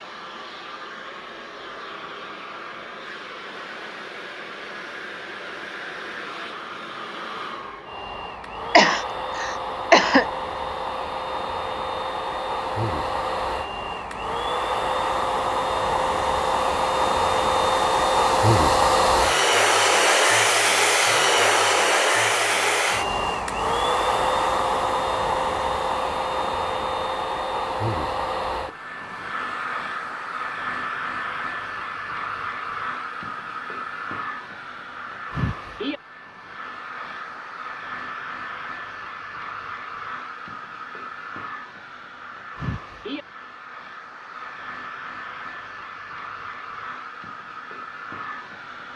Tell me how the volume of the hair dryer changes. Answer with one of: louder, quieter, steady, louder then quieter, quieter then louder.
louder then quieter.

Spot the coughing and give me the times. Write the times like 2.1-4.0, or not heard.
8.7-10.2.